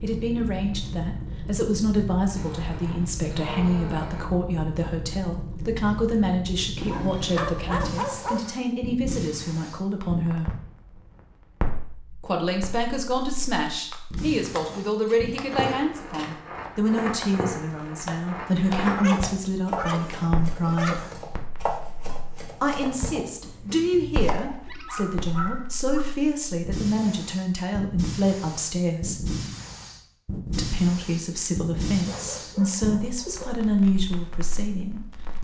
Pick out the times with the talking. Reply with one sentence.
The talking can be heard from 0.0 to 10.6 s, from 12.2 to 21.1 s, from 22.6 to 29.2 s and from 30.6 to 35.3 s.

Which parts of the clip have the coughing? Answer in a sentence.
You can't hear the coughing here.